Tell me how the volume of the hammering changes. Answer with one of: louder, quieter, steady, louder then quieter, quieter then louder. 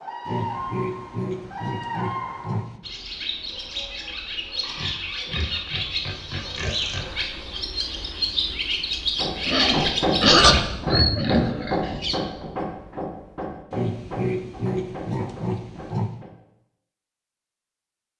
quieter.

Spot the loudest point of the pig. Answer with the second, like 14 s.
10 s.